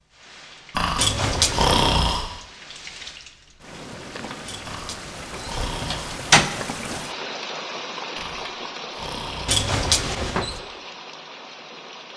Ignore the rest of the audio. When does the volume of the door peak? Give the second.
6 s.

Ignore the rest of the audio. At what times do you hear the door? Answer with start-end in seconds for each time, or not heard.
0.9-1.8, 4.5-6.5, 9.4-10.6.